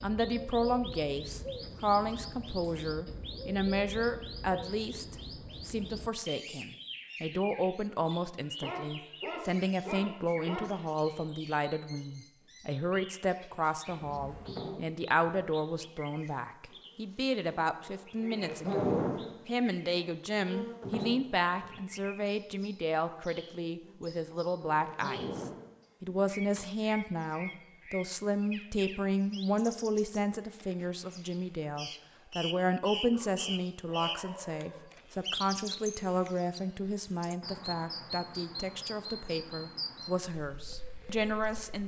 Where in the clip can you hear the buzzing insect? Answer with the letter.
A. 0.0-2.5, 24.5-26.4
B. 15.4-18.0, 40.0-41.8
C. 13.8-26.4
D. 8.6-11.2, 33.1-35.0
C.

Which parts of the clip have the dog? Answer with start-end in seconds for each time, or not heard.
8.6-11.2, 33.1-35.0.